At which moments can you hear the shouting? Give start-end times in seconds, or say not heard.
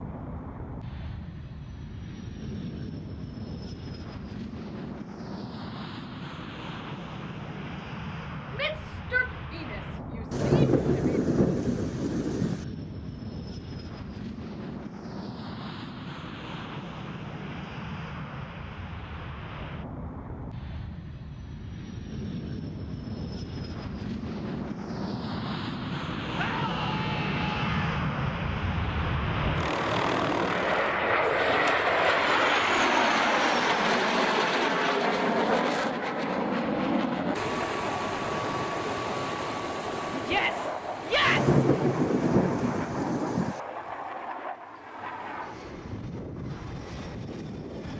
8.5-11.2, 26.4-28.0, 40.2-41.6.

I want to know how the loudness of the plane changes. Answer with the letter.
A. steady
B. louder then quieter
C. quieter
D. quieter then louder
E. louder
B.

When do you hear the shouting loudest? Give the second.
41 s.